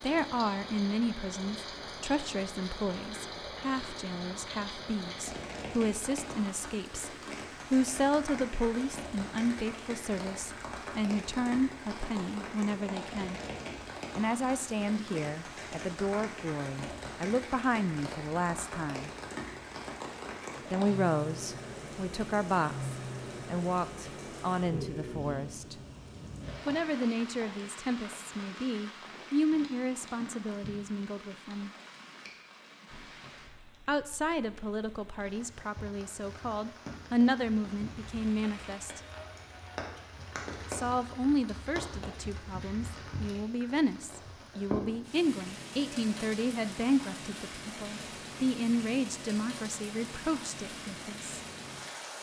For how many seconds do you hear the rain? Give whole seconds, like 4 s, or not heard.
52 s.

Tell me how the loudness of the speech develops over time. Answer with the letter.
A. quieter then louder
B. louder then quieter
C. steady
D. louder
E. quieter
C.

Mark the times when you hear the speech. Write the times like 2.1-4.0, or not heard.
0.0-13.4, 14.2-19.1, 20.7-25.8, 26.6-31.7, 33.9-39.0, 40.7-51.4.